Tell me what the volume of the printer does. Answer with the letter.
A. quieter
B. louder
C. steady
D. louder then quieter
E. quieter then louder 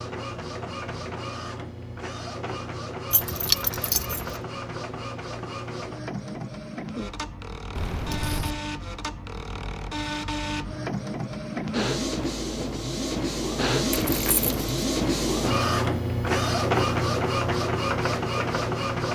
B.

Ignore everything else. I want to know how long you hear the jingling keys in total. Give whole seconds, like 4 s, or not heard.
3 s.